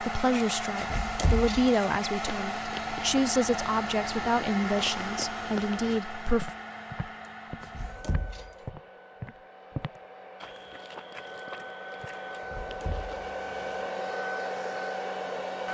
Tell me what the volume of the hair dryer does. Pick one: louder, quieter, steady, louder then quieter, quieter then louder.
quieter then louder.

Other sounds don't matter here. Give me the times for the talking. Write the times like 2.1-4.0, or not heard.
0.0-6.5.